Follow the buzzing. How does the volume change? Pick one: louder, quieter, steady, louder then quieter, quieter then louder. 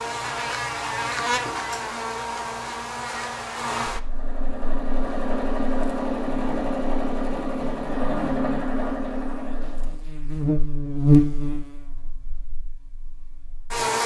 quieter then louder.